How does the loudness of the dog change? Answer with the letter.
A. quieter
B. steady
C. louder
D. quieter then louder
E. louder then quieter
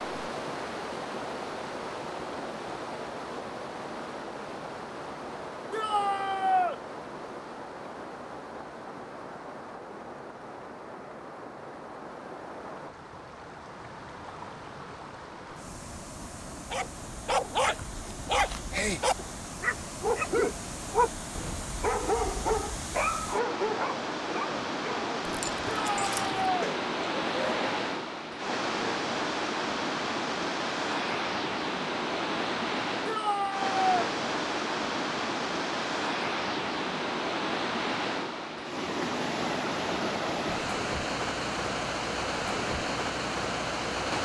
A.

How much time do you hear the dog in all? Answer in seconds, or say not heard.
11 s.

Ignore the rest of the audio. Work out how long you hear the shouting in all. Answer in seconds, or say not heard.
3 s.